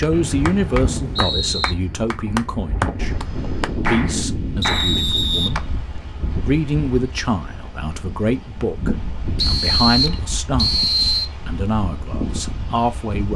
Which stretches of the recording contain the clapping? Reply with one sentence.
The clapping can be heard from 0.0 to 5.7 s.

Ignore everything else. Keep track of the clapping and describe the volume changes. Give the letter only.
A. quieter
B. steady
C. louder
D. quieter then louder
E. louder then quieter
D.